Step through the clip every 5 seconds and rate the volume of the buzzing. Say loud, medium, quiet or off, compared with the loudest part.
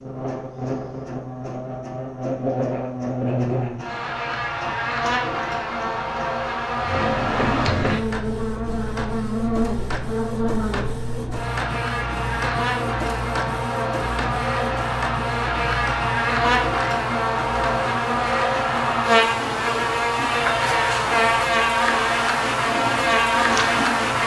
medium, medium, medium, loud, loud.